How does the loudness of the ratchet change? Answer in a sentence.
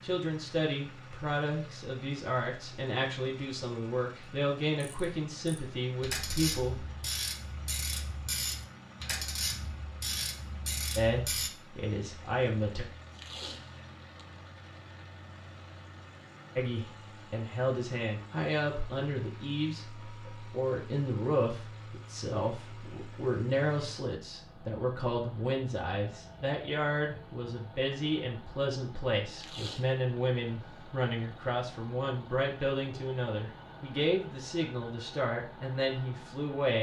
The volume of the ratchet stays about the same.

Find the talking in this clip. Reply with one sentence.
The talking can be heard from 0.0 to 6.8 s, from 10.9 to 12.8 s and from 16.6 to 36.7 s.